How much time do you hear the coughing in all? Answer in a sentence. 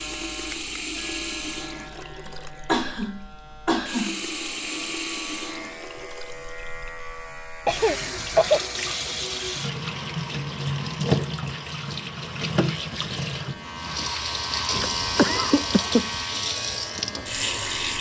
The coughing can be heard for 4 seconds in total.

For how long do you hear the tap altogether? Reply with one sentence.
You can hear the tap for 18 seconds altogether.